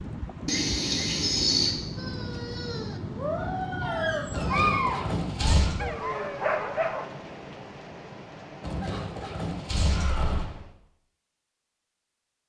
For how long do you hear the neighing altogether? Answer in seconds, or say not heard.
5 s.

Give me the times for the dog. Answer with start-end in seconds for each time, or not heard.
1.9-7.0.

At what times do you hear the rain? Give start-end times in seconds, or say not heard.
0.0-10.8.